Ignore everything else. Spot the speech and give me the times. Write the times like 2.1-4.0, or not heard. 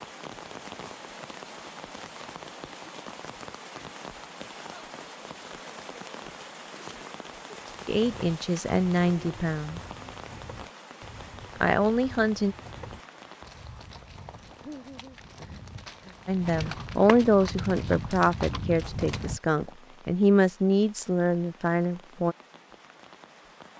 7.8-9.8, 11.6-12.6, 16.2-22.4.